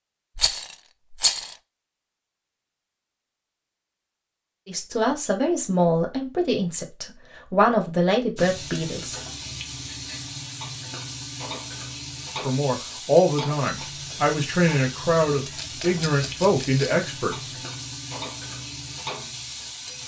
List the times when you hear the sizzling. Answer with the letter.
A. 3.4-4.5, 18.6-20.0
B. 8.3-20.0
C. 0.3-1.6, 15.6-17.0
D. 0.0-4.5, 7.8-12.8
B.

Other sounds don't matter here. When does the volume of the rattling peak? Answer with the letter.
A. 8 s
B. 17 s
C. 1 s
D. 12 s
C.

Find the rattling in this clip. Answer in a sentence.
The rattling can be heard from 0.3 to 1.6 s and from 15.6 to 17.0 s.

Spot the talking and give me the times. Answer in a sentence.
You can hear the talking from 4.7 to 9.2 s and from 12.4 to 17.5 s.